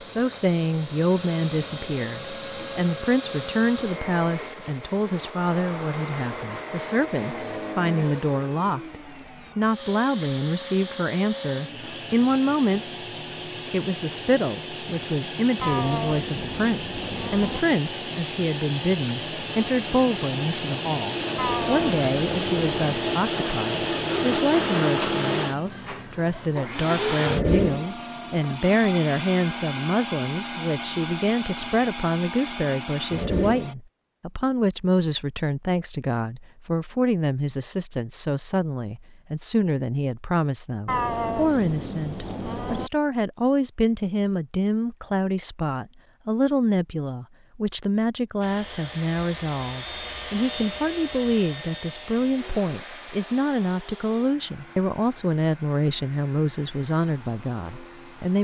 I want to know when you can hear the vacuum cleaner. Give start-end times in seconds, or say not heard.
0.0-33.8, 48.4-58.3.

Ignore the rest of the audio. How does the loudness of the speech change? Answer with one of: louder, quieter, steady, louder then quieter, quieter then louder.
steady.